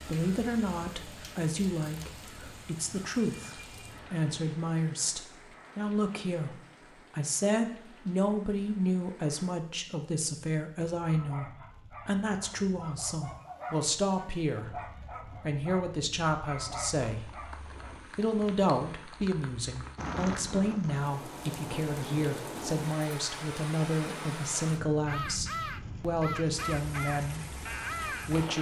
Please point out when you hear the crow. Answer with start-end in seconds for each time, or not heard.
0.0-4.3, 25.1-28.5.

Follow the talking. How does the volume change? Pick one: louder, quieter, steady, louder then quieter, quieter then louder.
steady.